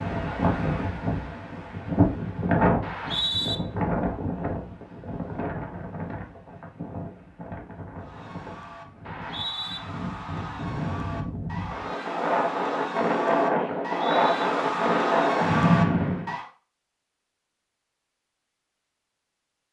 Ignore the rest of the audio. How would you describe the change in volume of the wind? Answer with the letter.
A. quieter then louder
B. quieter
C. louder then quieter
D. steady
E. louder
A.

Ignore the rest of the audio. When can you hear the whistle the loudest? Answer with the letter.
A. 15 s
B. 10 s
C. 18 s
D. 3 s
D.